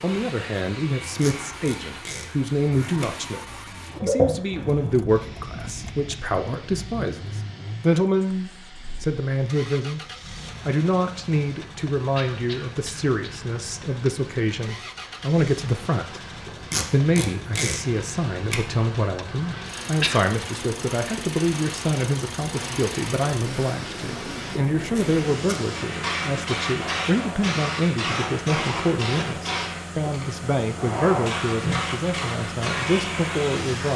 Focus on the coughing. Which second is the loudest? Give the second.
20 s.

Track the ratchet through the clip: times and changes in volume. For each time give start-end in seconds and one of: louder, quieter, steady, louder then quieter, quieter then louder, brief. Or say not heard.
not heard.